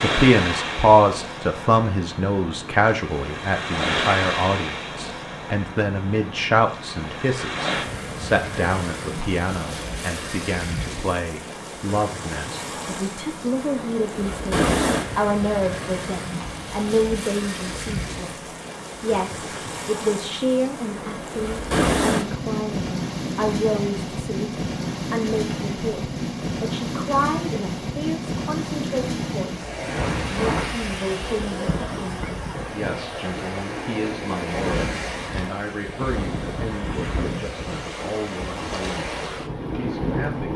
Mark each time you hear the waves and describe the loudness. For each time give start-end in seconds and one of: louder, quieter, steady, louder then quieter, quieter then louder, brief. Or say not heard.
0.0-40.5 steady.